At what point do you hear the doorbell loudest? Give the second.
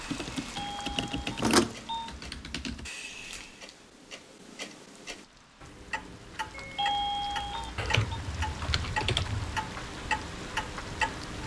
7 s.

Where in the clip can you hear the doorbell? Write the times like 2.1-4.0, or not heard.
0.5-2.1, 6.5-8.2.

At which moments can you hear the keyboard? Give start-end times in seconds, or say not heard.
0.1-2.9, 7.8-9.7.